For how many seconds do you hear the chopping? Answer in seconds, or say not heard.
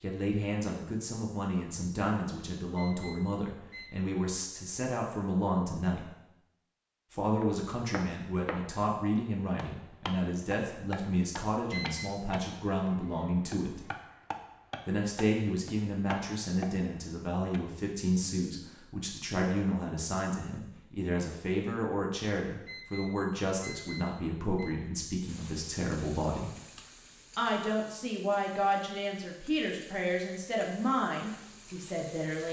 10 s.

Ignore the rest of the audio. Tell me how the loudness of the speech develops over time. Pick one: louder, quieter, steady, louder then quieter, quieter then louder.
steady.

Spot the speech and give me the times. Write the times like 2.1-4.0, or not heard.
0.0-6.1, 7.1-13.8, 14.8-26.6, 27.4-32.4.